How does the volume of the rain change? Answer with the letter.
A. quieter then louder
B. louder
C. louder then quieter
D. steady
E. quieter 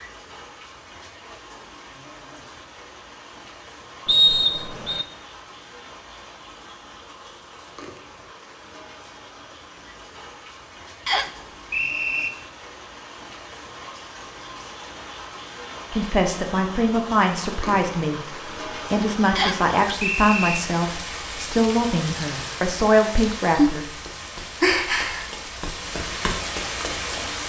B.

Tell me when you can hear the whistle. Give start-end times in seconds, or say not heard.
4.0-5.0, 11.1-12.3, 19.4-20.6.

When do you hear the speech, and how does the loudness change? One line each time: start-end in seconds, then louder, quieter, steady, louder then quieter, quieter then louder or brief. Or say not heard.
15.9-23.9 steady.